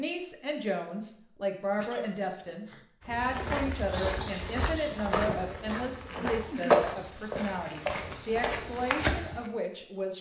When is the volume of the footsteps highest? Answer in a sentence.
The loudest moment of the footsteps is at 7 seconds.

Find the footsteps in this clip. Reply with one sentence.
The footsteps can be heard from 3.0 to 9.5 s.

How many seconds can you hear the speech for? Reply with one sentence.
The speech can be heard for 10 seconds in total.